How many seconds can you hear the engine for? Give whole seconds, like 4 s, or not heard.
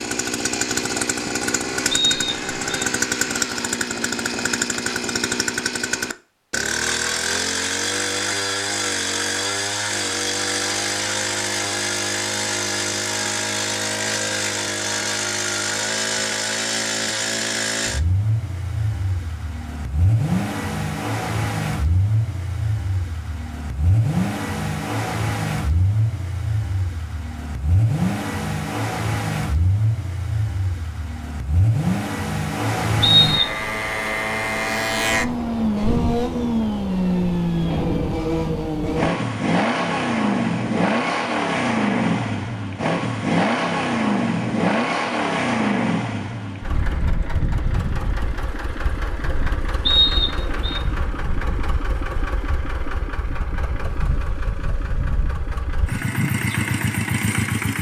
58 s.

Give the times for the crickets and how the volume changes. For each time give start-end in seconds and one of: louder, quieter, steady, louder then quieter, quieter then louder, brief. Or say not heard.
not heard.